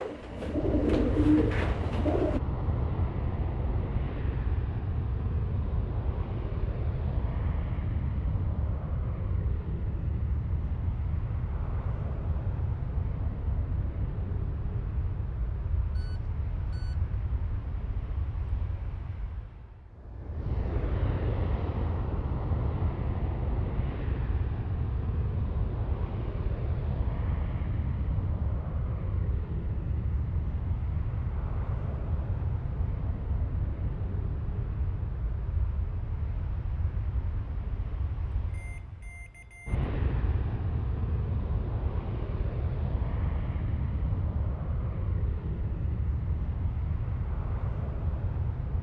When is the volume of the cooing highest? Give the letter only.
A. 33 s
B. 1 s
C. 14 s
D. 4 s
B.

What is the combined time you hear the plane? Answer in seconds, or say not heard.
49 s.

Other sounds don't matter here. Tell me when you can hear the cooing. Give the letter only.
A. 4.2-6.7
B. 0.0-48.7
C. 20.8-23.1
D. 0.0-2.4
D.